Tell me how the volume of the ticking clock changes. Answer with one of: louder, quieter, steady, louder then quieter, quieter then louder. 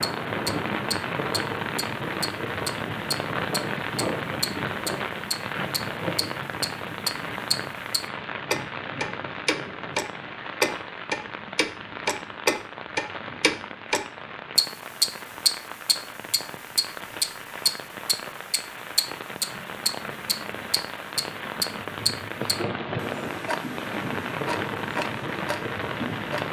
louder then quieter.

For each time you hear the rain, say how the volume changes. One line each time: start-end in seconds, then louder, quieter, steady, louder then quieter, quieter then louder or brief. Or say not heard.
0.0-26.4 quieter then louder.